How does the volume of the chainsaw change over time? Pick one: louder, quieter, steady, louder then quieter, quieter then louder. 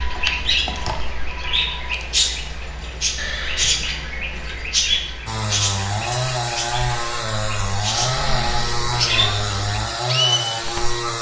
steady.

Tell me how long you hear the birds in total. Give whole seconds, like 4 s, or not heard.
11 s.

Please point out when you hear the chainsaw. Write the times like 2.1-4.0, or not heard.
5.2-11.1.